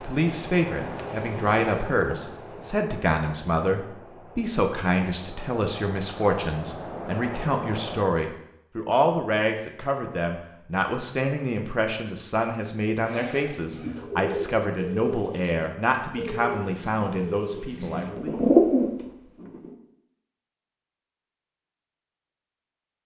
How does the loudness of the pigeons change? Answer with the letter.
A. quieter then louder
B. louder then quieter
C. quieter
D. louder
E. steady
D.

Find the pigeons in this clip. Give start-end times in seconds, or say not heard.
13.0-19.8.